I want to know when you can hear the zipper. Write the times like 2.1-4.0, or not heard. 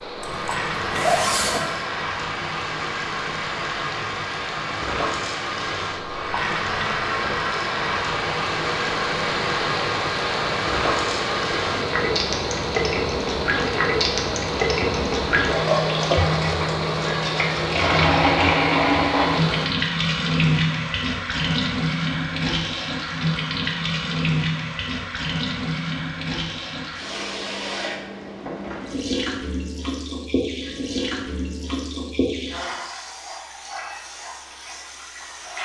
0.2-1.7.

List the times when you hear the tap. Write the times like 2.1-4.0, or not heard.
0.1-35.6.